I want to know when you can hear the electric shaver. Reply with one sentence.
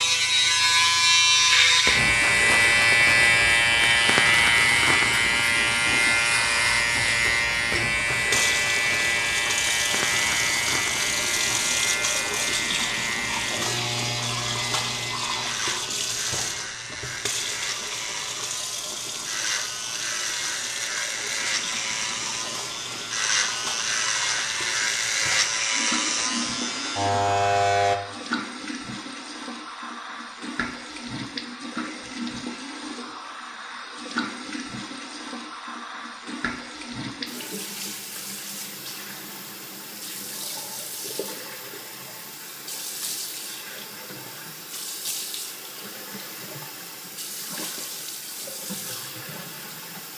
The electric shaver can be heard from 0.0 to 28.0 s.